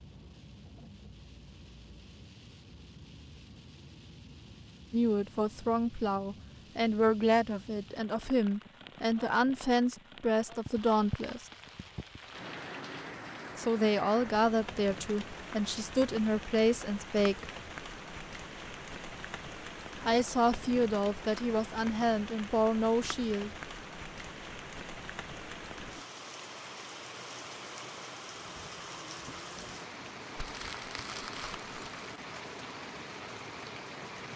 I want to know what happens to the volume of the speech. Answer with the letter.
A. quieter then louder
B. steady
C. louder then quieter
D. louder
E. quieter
B.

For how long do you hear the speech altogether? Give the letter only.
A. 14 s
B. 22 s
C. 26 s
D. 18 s
A.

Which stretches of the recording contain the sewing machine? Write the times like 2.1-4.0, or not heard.
not heard.